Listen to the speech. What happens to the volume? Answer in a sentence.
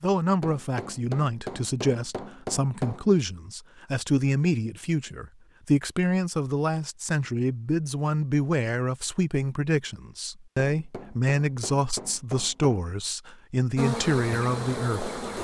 The loudness of the speech stays about the same.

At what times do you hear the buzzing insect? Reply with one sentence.
You can hear the buzzing insect from 13.8 to 15.3 s.